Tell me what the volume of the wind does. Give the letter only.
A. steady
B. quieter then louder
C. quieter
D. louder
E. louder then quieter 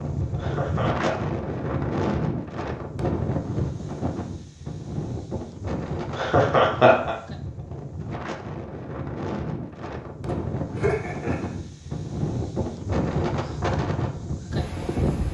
B.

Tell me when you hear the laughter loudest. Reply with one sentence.
The loudest moment of the laughter is at 7 seconds.